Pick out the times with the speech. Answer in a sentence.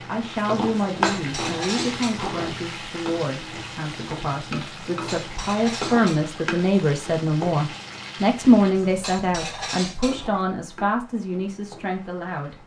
You can hear the speech from 0.1 to 12.6 s.